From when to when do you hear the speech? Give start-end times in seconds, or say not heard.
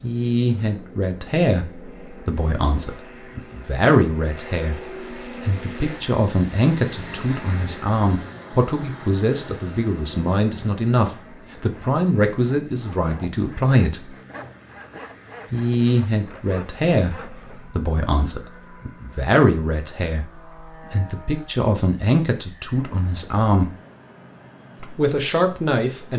0.0-14.2, 15.5-23.7, 24.8-26.1.